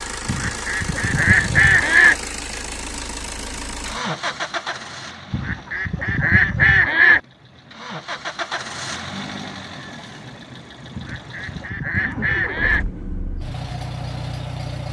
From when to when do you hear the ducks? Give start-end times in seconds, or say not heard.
0.2-2.1, 5.3-7.2, 10.9-12.8.